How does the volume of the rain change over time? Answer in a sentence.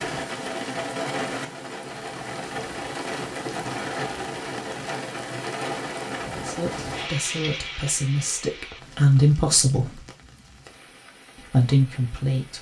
The loudness of the rain goes down.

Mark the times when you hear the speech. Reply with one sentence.
You can hear the speech from 6.5 to 10.1 s and from 11.3 to 12.5 s.